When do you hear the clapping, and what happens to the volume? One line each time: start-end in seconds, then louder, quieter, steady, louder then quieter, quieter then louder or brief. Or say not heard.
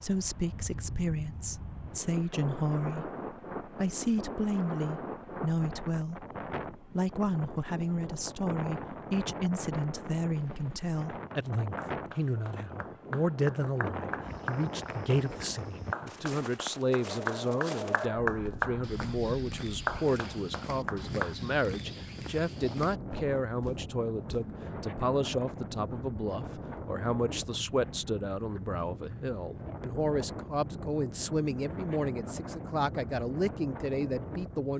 11.9-21.4 louder.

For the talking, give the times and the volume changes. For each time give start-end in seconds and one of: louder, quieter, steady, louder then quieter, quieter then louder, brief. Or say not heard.
0.0-34.7 steady.